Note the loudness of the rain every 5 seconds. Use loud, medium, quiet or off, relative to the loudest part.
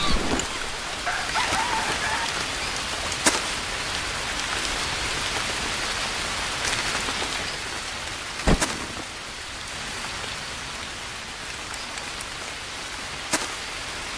loud, loud, medium.